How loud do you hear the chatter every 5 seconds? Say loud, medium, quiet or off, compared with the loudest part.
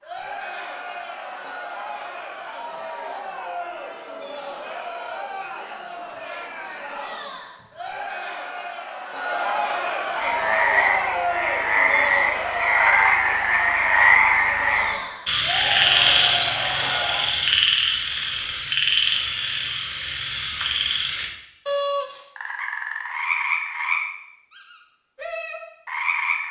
medium, loud, loud, loud, off, off.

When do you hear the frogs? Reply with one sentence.
You can hear the frogs from 10.2 to 26.4 s.